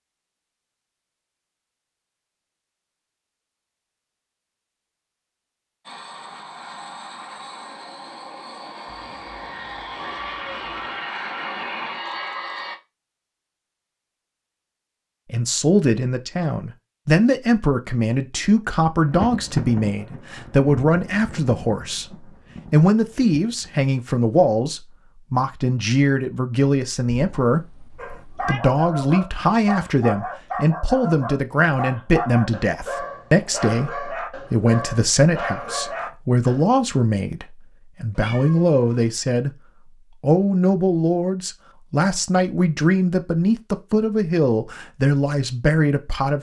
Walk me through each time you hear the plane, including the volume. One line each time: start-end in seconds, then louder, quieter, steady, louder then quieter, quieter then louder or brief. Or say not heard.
5.8-12.8 louder.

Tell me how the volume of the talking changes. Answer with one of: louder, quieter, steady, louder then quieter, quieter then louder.
steady.